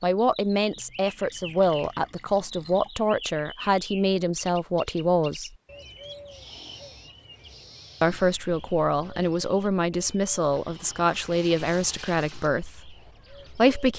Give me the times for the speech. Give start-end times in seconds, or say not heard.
0.0-5.5, 8.0-13.9.